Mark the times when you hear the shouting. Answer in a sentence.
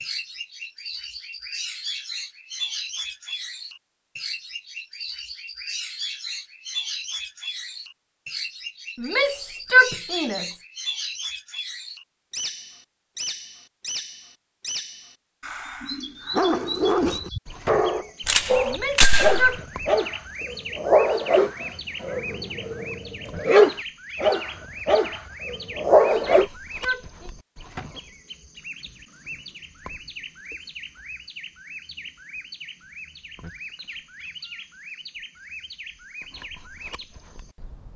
You can hear the shouting from 8.9 to 10.5 s, from 18.6 to 19.6 s and from 26.1 to 27.3 s.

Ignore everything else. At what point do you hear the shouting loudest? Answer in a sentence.
The loudest moment of the shouting is at 10 seconds.